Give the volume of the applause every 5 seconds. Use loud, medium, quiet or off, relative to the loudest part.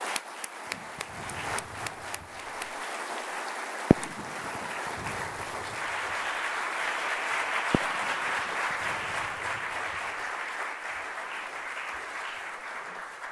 medium, loud, medium.